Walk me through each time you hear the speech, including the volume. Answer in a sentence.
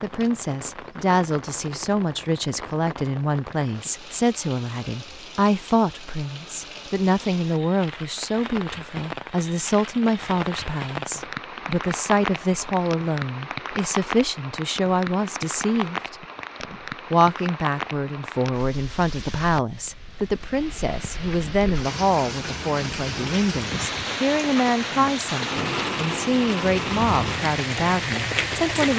You can hear the speech from 0.0 to 28.9 s, at a steady volume.